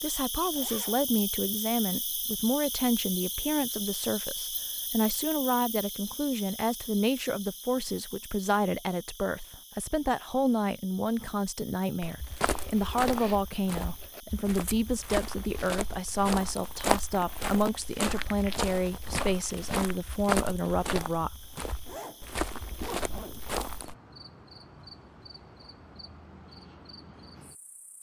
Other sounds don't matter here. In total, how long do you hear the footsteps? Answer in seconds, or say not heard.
12 s.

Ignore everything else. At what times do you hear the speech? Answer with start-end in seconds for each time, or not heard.
0.0-21.3.